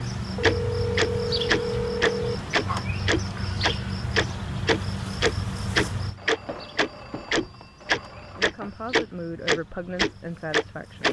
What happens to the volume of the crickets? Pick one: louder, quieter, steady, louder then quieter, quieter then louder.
quieter.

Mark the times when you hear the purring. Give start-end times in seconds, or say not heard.
not heard.